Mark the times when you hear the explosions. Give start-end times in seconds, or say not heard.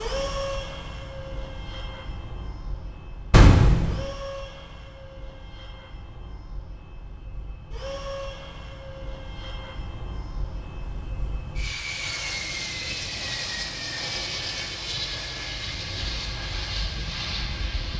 3.3-4.0.